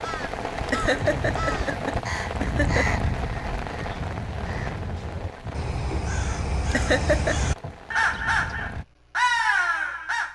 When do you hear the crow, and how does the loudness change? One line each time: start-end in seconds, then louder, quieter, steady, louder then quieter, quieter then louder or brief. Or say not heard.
0.0-10.3 louder.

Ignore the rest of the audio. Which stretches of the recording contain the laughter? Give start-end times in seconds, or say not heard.
0.7-3.0, 6.7-7.5.